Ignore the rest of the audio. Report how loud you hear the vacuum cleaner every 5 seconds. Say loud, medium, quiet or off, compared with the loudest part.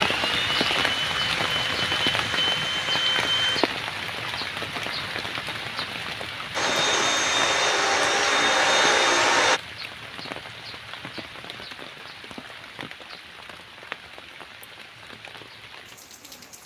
medium, loud, off, off.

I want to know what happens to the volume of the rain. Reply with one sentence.
The volume of the rain goes down.